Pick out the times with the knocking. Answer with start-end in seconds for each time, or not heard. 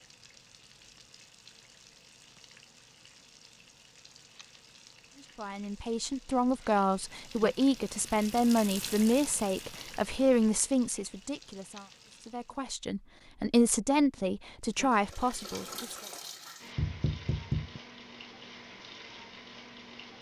16.8-17.8.